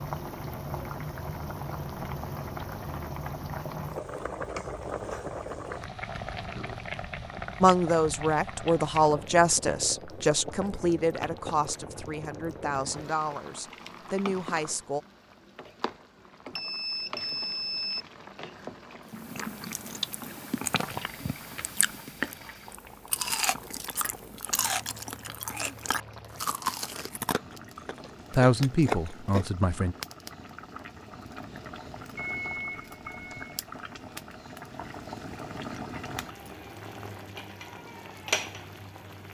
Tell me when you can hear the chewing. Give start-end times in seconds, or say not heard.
19.1-29.5.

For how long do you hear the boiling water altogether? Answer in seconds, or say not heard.
39 s.